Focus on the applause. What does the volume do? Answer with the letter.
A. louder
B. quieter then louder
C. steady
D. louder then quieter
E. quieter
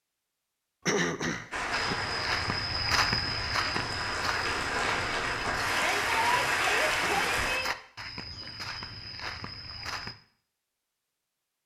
A.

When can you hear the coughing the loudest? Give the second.
1 s.